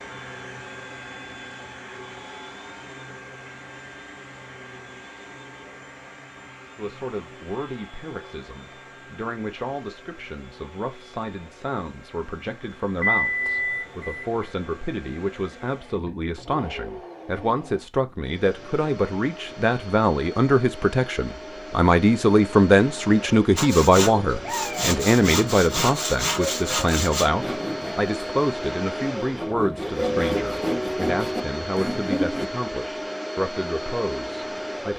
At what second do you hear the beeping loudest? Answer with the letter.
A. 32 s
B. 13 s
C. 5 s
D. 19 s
B.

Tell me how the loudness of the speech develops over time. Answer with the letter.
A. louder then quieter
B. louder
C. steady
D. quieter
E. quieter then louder
A.